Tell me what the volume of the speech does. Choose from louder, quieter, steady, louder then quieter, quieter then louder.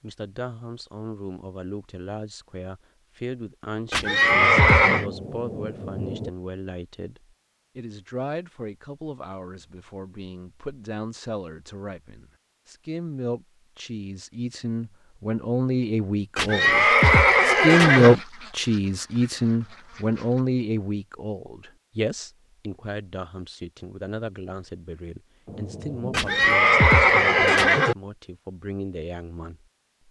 louder then quieter.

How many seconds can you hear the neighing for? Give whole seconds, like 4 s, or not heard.
5 s.